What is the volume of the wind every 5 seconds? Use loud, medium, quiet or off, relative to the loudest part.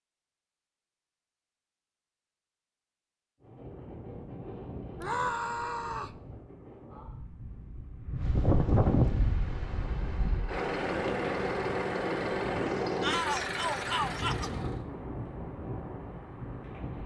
medium, loud, medium, medium.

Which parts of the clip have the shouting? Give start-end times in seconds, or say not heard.
5.0-6.2, 13.0-14.5.